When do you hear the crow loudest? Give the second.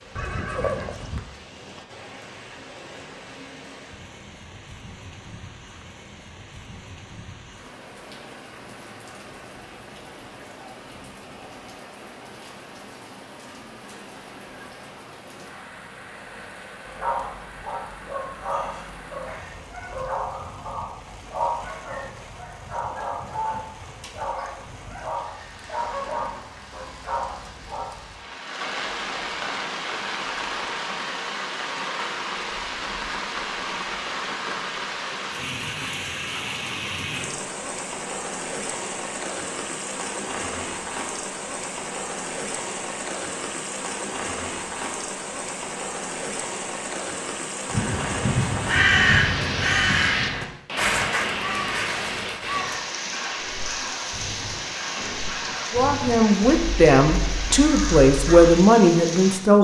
49 s.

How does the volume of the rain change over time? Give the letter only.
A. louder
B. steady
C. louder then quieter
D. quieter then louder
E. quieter
A.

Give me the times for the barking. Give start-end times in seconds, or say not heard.
16.9-28.1.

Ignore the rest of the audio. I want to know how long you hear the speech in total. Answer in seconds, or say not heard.
4 s.